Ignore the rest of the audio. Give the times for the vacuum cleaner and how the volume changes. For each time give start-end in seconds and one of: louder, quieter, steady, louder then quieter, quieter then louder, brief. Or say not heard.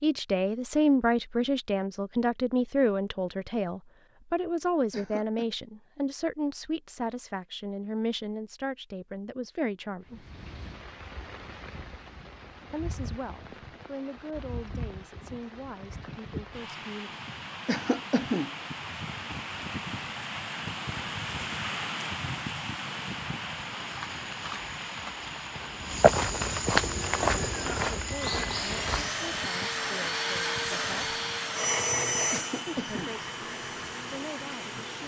26.8-35.0 louder then quieter.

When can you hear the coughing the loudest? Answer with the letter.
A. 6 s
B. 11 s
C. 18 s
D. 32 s
C.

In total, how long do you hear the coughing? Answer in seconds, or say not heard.
2 s.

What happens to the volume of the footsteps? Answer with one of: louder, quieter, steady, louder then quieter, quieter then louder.
louder then quieter.